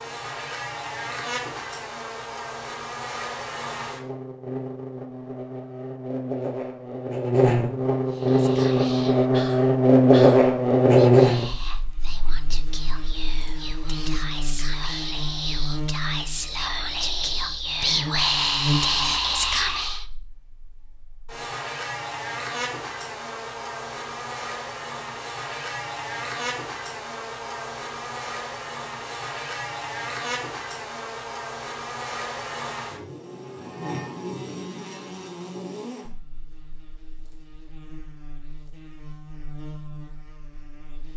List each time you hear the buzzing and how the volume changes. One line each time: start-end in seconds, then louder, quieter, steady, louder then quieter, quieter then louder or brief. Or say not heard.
0.0-41.1 louder then quieter.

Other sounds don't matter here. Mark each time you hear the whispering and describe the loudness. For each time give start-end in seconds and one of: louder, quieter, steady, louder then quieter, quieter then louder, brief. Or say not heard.
8.1-20.1 louder.